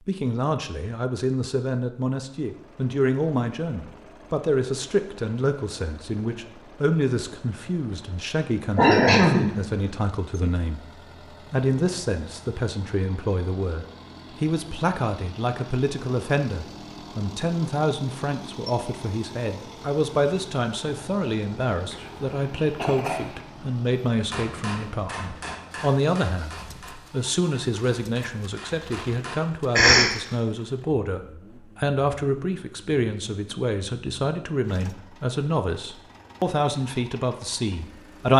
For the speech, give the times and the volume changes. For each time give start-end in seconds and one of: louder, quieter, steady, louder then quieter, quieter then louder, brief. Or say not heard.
0.0-38.3 steady.